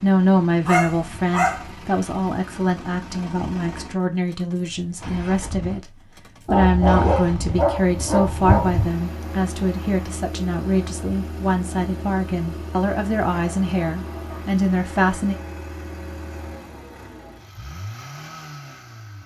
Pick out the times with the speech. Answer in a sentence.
You can hear the speech from 0.0 to 5.9 s and from 6.5 to 15.3 s.